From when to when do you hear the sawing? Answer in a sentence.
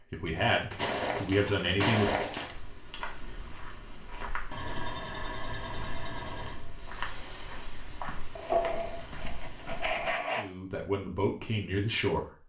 You can hear the sawing from 0.7 to 2.6 s, from 4.5 to 6.7 s and from 8.3 to 10.5 s.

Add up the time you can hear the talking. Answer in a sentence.
You can hear the talking for 4 seconds altogether.